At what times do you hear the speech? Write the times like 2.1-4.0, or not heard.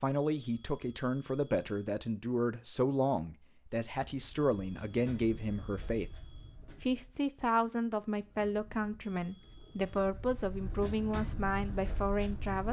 0.0-6.1, 6.8-12.6.